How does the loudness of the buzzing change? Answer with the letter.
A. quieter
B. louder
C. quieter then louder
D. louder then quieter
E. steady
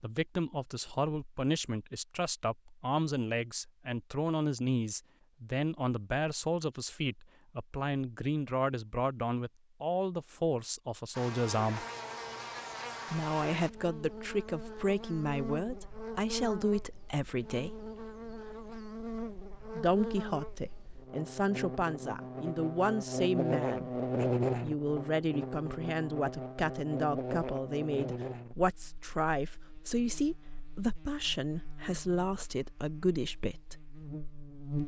D.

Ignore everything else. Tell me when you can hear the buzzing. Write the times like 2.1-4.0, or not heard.
11.1-34.8.